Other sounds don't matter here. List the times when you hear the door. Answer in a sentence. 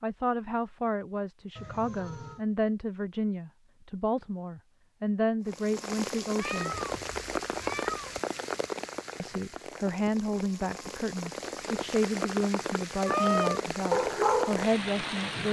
The door can't be heard in this clip.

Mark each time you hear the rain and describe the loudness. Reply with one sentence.
The rain can be heard from 5.5 to 15.4 s, getting quieter then louder.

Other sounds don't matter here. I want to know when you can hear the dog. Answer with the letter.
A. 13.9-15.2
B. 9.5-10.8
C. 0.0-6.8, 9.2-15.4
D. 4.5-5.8
A.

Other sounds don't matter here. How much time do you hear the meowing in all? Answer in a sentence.
The meowing can be heard for 3 seconds in total.